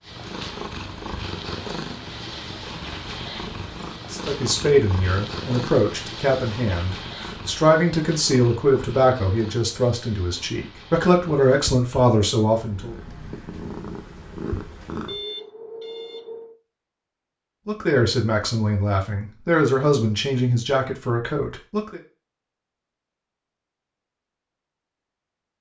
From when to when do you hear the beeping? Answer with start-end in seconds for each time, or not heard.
15.1-16.6.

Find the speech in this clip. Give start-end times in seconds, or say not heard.
4.1-12.9, 17.6-22.0.